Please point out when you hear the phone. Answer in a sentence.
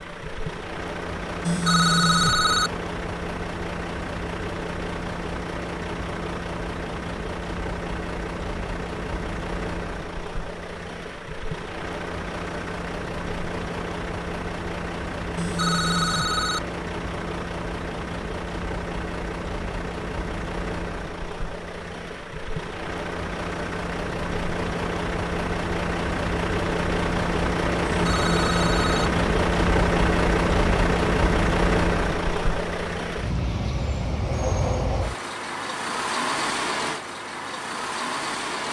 The phone can be heard from 1.4 to 2.7 s, from 15.3 to 16.6 s and from 27.9 to 29.1 s.